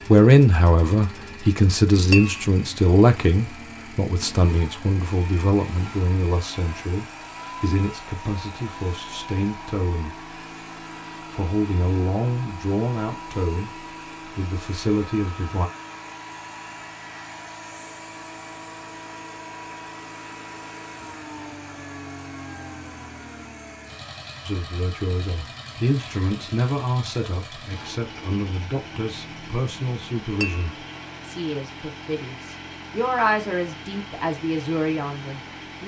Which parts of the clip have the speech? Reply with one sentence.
You can hear the speech from 0.0 to 10.2 s, from 11.2 to 15.7 s and from 24.4 to 35.8 s.